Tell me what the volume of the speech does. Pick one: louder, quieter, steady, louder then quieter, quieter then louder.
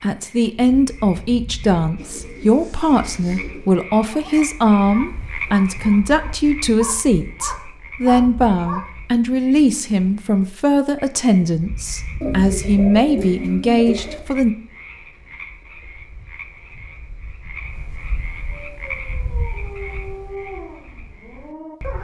steady.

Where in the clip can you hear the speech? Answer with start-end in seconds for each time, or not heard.
0.0-14.6.